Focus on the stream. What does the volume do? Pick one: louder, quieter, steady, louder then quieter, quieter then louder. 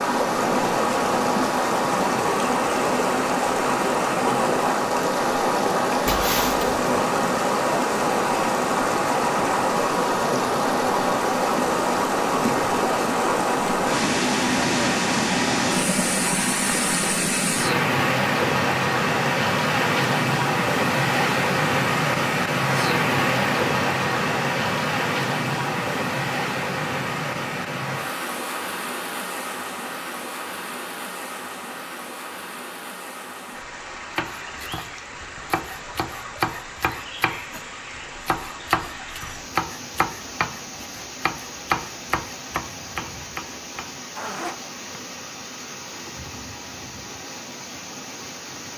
quieter.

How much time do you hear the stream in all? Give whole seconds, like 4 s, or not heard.
49 s.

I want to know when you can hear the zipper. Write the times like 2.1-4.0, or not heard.
6.0-6.7, 44.1-44.7.